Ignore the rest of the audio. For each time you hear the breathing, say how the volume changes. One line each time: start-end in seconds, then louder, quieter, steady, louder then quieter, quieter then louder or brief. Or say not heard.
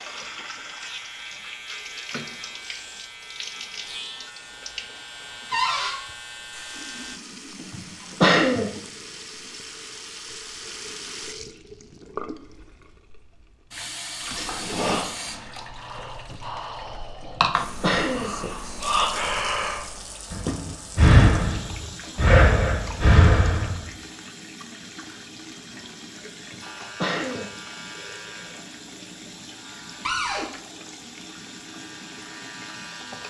14.1-23.8 louder.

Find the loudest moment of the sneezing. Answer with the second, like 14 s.
8 s.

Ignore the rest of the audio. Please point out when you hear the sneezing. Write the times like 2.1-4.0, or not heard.
7.5-8.8, 17.2-18.4, 26.4-27.6.